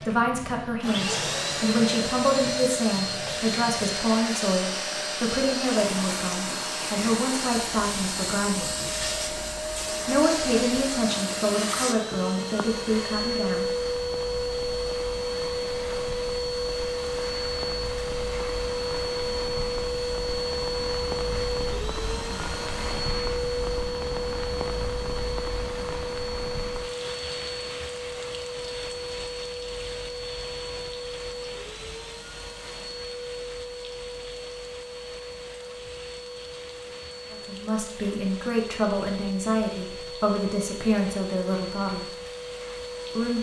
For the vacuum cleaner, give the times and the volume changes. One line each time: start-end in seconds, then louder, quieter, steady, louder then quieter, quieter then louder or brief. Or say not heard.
0.0-43.3 quieter.